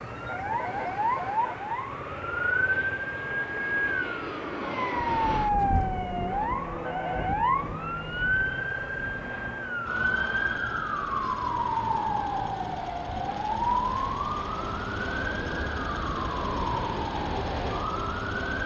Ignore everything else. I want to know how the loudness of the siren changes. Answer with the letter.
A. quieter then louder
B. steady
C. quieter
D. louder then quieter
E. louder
B.